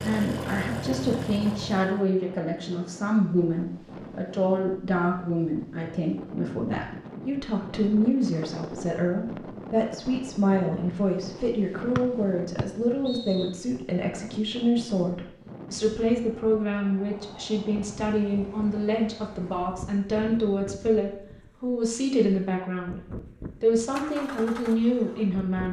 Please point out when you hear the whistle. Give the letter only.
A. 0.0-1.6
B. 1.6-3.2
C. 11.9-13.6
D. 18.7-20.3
C.